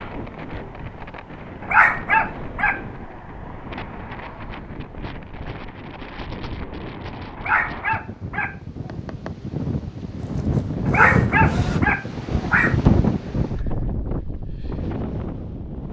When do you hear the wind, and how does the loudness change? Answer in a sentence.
You can hear the wind from 0.0 to 15.8 s, getting louder.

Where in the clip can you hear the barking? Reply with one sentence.
The barking can be heard from 1.6 to 2.8 s, from 7.3 to 8.6 s and from 10.8 to 12.8 s.